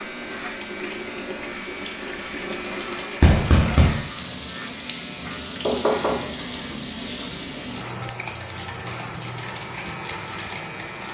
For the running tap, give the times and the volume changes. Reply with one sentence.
You can hear the running tap from 0.0 to 11.0 s, at a steady volume.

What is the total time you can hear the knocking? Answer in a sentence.
The knocking can be heard for 2 seconds in total.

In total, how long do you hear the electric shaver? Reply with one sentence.
You can hear the electric shaver for 11 seconds altogether.